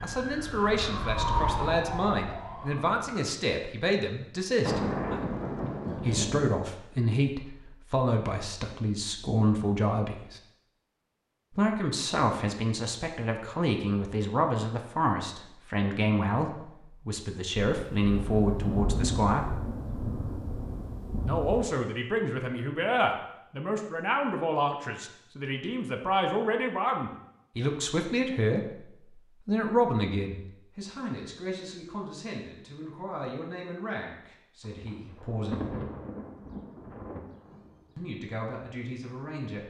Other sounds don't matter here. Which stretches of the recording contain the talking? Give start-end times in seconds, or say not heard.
0.0-4.8, 6.0-10.4, 11.5-19.6, 21.2-35.7, 38.0-39.6.